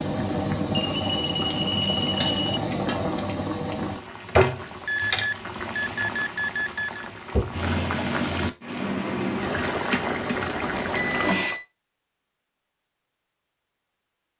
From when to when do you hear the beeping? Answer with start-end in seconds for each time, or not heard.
0.7-2.4, 4.8-7.1, 10.9-11.7.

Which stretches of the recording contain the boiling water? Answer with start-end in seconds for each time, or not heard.
0.0-11.6.